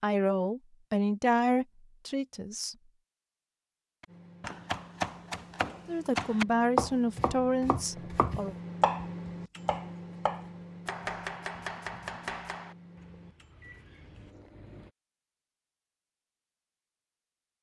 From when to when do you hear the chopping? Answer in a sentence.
You can hear the chopping from 4.0 to 14.3 s.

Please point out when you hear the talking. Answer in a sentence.
The talking can be heard from 0.0 to 2.8 s and from 5.8 to 8.6 s.